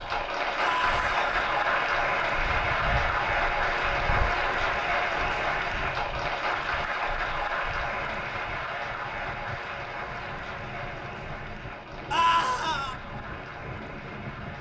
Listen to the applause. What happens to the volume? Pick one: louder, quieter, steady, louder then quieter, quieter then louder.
quieter.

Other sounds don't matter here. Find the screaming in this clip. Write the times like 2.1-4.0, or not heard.
0.6-1.4, 12.1-12.9.